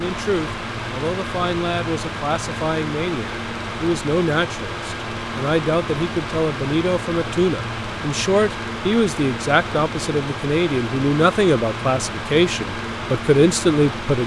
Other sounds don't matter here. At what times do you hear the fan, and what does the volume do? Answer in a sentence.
The fan can be heard from 0.0 to 14.2 s, at a steady volume.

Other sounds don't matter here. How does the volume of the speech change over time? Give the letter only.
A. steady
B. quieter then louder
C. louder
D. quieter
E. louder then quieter
C.